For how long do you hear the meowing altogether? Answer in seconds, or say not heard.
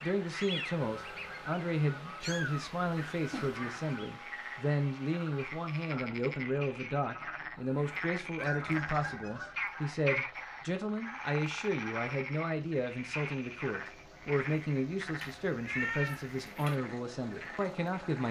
3 s.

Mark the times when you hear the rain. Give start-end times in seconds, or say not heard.
not heard.